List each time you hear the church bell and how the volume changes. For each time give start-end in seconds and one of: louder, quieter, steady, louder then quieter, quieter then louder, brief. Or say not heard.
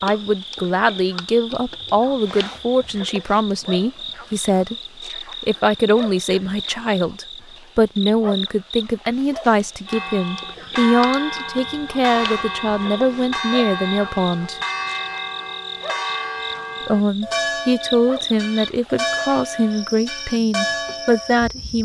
9.8-21.4 steady.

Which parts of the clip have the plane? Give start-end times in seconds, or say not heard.
not heard.